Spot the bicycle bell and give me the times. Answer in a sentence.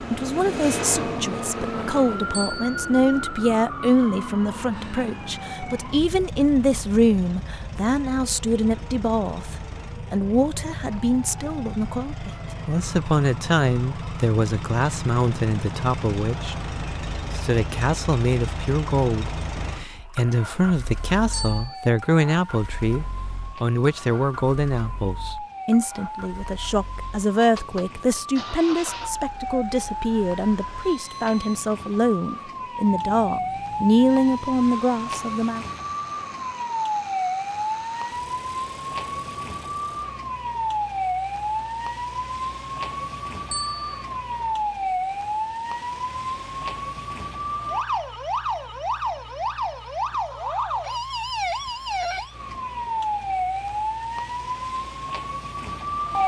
You can hear the bicycle bell from 2.3 to 2.7 s, from 21.3 to 21.9 s and from 43.5 to 44.0 s.